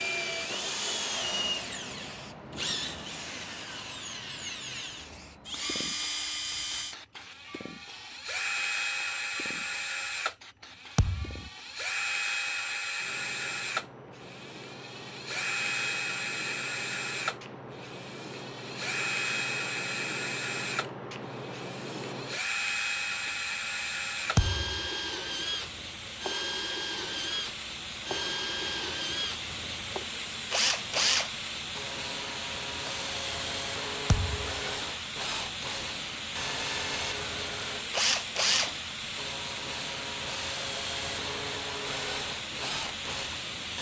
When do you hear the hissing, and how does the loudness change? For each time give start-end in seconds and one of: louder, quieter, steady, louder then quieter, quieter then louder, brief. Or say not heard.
0.0-43.7 louder.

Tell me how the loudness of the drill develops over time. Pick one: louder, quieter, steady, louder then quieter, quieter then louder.
steady.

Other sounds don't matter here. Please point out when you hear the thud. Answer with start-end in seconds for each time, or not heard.
10.9-11.5, 24.4-24.9, 34.0-34.5.